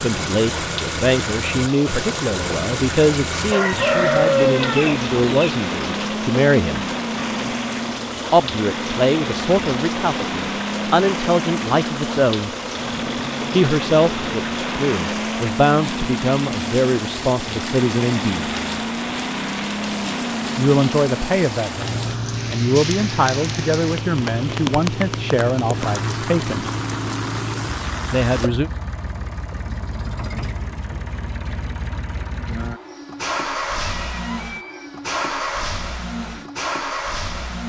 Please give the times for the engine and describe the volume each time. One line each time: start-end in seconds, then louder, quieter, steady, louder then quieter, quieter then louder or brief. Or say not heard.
0.0-37.6 steady.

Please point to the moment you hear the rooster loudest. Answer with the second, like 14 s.
4 s.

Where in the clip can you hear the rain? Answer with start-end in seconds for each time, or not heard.
0.0-28.5.